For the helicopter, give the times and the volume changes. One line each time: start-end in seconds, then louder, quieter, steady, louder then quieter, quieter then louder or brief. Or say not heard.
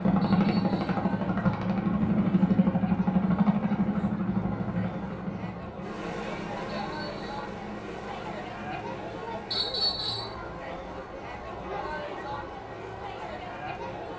0.0-13.9 quieter.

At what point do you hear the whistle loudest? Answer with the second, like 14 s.
10 s.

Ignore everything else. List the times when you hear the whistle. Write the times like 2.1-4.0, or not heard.
0.2-1.1, 6.7-7.2, 9.5-10.3.